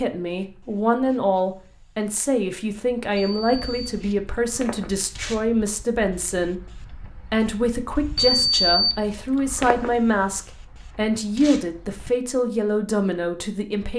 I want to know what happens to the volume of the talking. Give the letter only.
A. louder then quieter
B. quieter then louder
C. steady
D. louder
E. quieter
C.